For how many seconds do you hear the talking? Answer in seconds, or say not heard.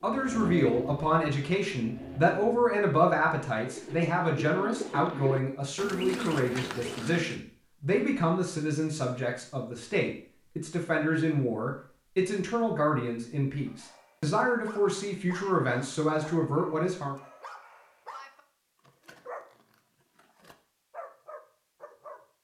17 s.